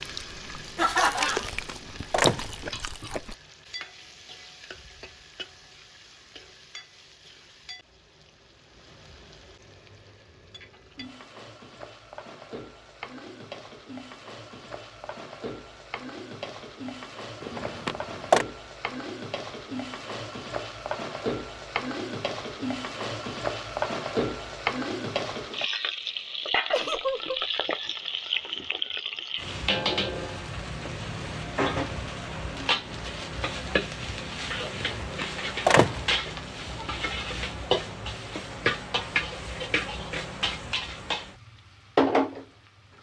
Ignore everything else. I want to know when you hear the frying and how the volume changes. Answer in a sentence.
The frying can be heard from 0.0 to 42.5 s, getting louder.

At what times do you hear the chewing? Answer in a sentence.
The chewing can be heard from 0.0 to 3.4 s.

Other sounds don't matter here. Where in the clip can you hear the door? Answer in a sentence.
The door can be heard from 1.2 to 2.5 s, from 17.4 to 18.4 s and from 34.8 to 36.1 s.